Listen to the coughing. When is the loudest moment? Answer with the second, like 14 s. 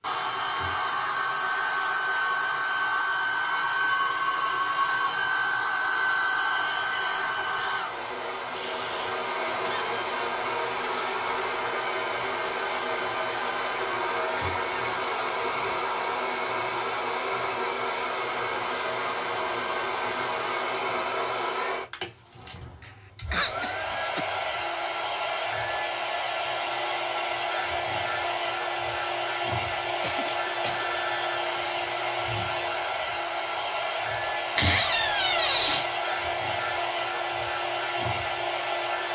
23 s.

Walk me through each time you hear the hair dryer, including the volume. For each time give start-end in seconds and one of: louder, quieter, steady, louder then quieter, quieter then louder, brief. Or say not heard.
0.0-39.1 steady.